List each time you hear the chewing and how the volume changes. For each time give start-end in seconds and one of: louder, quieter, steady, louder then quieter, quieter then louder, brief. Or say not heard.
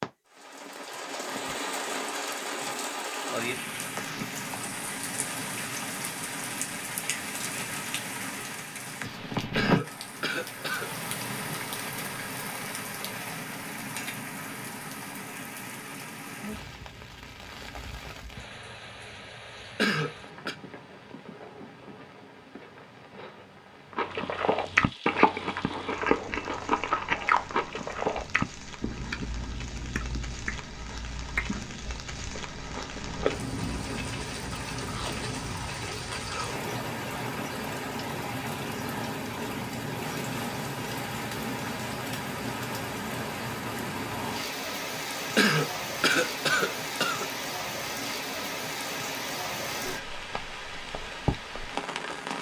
23.9-35.8 quieter.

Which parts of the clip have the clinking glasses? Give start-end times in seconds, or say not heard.
not heard.